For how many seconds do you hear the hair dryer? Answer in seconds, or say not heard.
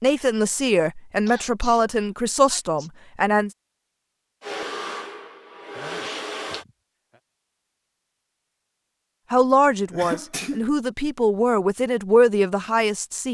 2 s.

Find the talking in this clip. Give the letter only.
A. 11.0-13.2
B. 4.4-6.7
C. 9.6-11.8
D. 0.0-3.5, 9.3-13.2
D.